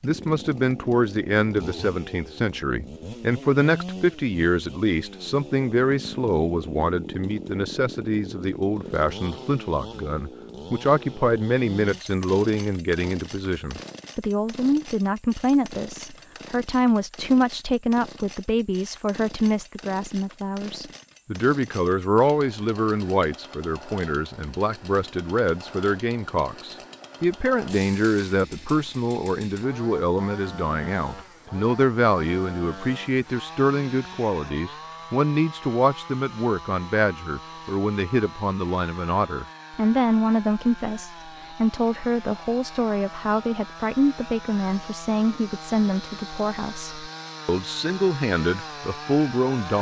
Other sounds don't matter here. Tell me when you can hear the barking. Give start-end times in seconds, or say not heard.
not heard.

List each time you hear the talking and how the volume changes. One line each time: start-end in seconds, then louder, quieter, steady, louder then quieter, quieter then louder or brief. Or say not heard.
0.0-49.7 steady.